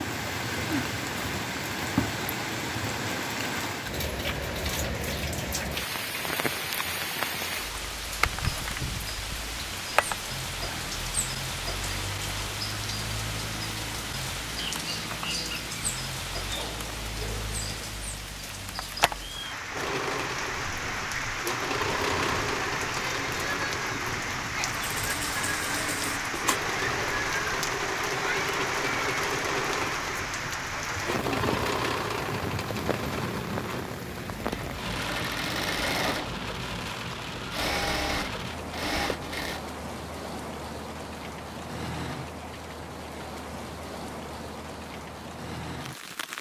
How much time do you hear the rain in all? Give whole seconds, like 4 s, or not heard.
46 s.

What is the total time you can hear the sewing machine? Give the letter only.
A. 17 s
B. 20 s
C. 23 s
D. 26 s
B.